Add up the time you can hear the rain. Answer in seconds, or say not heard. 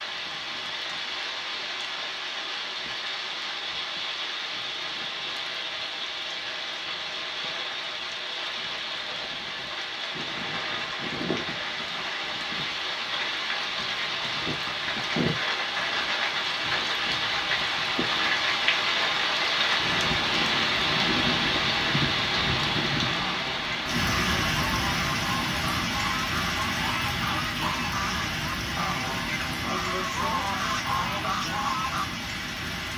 33 s.